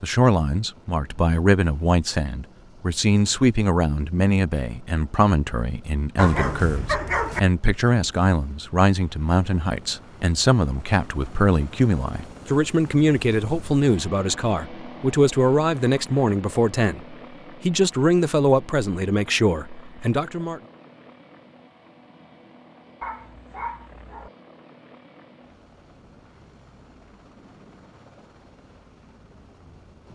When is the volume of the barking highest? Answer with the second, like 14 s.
7 s.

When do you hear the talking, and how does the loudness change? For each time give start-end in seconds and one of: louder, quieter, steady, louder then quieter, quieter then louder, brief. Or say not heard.
0.0-20.6 steady.